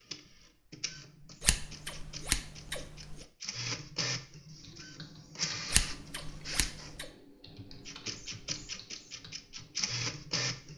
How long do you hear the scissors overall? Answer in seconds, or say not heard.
3 s.